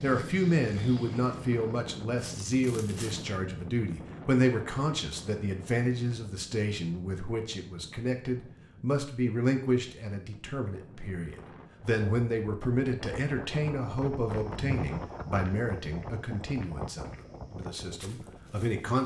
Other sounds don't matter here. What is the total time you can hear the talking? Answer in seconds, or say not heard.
19 s.